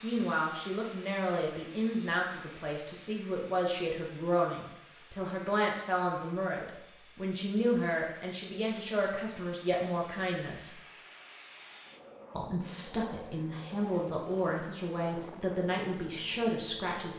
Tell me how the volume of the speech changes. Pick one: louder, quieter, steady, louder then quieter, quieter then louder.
steady.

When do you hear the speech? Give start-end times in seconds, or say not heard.
0.0-10.8, 12.3-17.1.